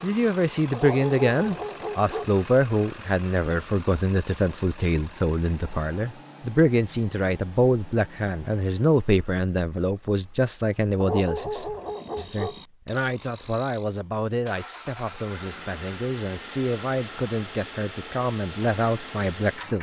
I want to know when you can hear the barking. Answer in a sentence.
The barking can be heard from 0.7 to 2.4 s and from 11.0 to 12.6 s.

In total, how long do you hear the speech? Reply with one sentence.
You can hear the speech for 20 seconds altogether.